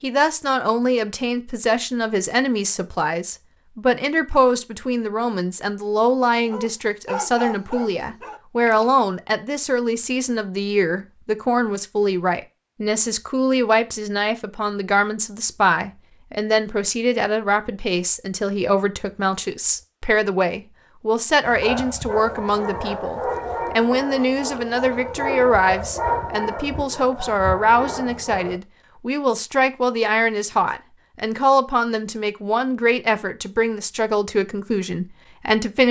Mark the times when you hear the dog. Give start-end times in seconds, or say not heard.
6.5-9.1, 21.4-28.6.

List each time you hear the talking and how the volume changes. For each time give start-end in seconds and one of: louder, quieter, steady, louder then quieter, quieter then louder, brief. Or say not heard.
0.0-35.8 steady.